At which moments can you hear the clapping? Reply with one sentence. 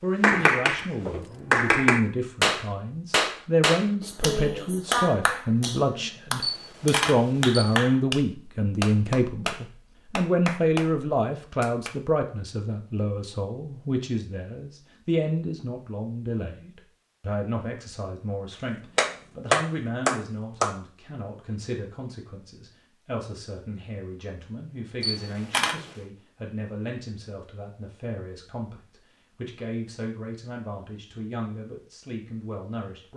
You can hear the clapping from 0.2 to 0.8 s, from 1.5 to 11.9 s and from 18.9 to 20.8 s.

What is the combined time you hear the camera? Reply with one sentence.
You can hear the camera for 2 seconds altogether.